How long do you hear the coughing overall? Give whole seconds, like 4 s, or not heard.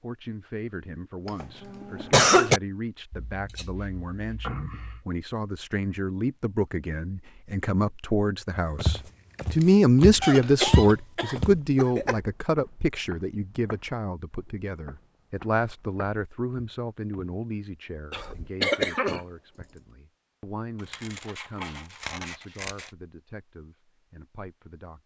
5 s.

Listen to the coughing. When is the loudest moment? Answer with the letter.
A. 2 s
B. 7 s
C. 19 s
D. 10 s
A.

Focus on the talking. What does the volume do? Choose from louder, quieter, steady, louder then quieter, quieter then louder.
louder then quieter.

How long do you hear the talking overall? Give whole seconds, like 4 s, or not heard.
25 s.